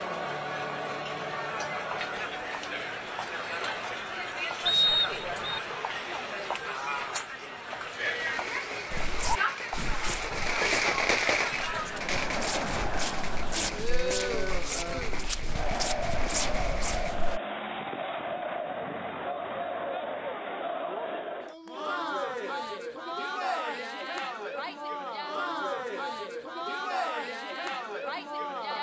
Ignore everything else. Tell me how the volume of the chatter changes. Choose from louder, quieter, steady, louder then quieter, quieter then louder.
steady.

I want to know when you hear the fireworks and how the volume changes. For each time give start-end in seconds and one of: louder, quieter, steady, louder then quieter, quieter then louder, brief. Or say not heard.
8.0-17.1 louder then quieter.